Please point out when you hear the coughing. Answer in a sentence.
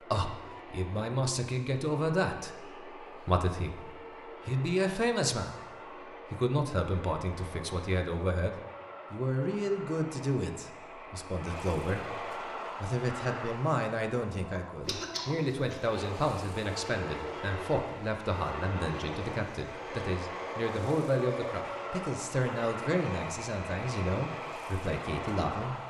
You can hear the coughing from 14.8 to 16.0 s.